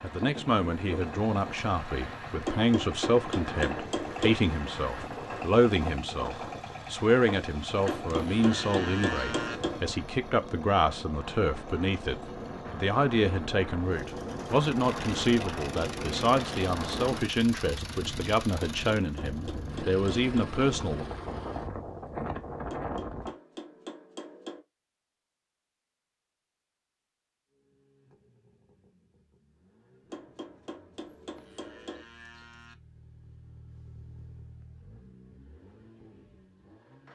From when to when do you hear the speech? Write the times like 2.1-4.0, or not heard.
0.0-21.1.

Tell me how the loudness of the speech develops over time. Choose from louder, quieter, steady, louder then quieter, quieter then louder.
steady.